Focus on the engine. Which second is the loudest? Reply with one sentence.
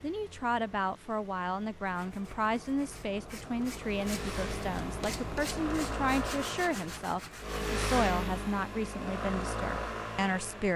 The volume of the engine peaks at 8 seconds.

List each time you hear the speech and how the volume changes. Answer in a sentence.
You can hear the speech from 0.0 to 10.7 s, at a steady volume.